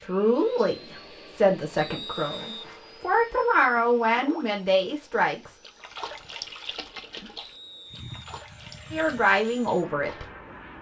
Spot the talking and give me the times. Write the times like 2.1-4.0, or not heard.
0.0-5.6, 8.9-10.2.